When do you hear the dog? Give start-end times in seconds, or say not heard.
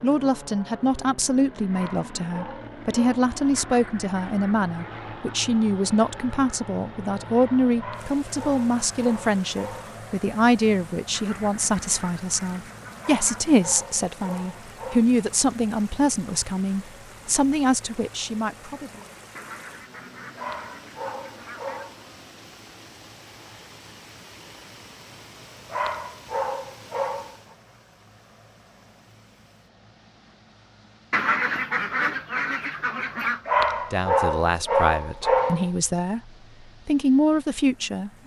1.7-3.2, 7.8-9.9, 13.0-15.1, 20.4-22.0, 25.7-27.6, 33.5-35.7.